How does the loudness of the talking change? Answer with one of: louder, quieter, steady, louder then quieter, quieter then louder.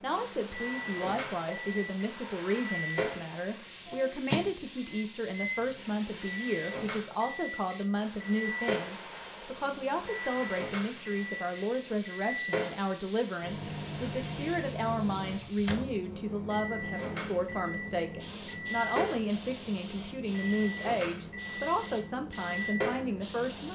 steady.